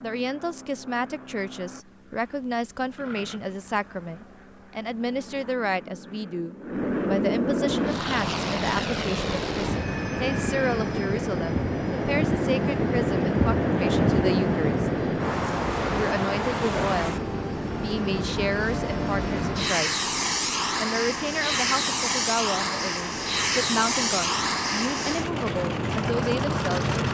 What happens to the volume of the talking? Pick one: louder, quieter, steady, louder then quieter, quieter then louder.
steady.